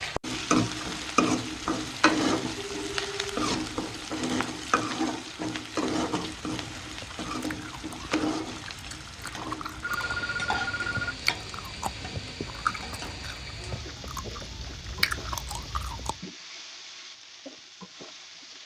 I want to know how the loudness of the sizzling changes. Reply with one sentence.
The loudness of the sizzling goes down.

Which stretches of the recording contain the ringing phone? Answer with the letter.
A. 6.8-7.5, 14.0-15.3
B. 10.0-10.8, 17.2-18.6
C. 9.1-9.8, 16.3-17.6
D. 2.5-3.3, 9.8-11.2
D.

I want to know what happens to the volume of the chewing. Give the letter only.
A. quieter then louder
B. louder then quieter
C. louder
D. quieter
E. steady
C.